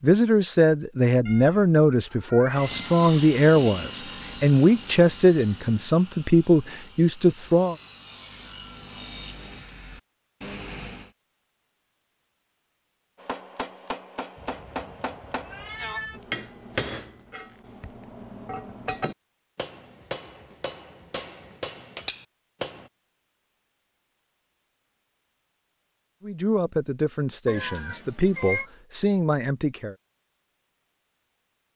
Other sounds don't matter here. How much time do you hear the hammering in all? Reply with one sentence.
The hammering can be heard for 10 seconds in total.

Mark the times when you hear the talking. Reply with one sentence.
The talking can be heard from 0.0 to 7.8 s and from 26.2 to 29.9 s.